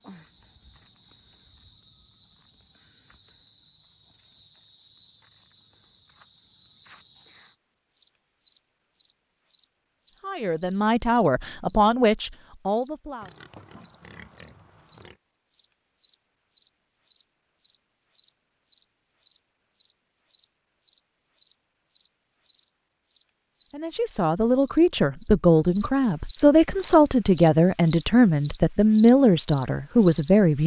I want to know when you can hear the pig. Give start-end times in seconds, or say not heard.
13.2-15.2.